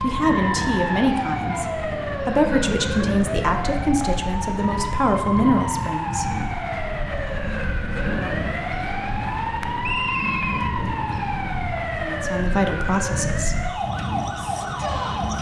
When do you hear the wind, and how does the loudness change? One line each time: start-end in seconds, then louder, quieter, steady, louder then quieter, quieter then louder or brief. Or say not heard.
0.0-15.3 steady.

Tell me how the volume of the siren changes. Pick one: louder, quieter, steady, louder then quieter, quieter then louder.
steady.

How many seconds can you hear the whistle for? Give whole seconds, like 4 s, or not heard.
2 s.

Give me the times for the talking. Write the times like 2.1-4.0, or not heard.
0.0-6.2, 12.0-13.6.